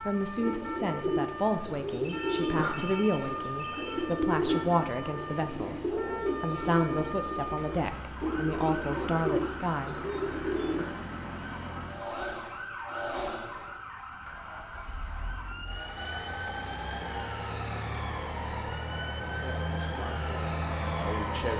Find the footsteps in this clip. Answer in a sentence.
You can't hear the footsteps here.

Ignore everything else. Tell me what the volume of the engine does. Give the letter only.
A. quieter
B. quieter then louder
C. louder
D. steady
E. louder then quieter
C.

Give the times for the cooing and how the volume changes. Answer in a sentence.
You can hear the cooing from 0.3 to 10.8 s, at a steady volume.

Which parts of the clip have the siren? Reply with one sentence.
The siren can be heard from 0.0 to 21.5 s.